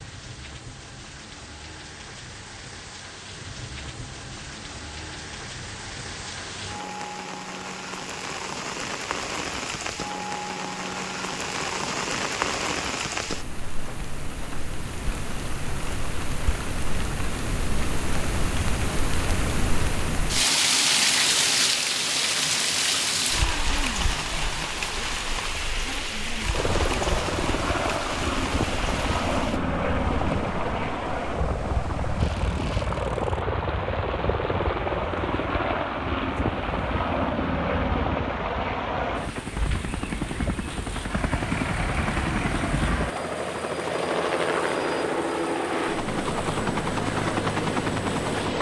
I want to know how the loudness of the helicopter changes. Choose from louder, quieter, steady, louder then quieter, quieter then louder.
steady.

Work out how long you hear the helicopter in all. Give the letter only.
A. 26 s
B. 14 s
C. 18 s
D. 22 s
D.